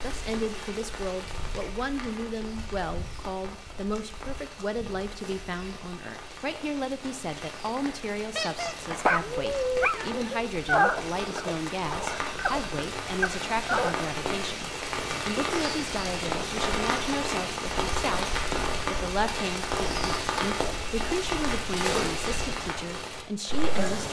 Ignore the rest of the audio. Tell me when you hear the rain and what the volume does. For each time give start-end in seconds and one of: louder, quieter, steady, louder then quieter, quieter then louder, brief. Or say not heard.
0.0-24.0 louder.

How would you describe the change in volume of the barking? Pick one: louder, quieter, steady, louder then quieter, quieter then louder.
quieter.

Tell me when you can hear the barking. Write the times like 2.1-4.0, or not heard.
8.3-13.9.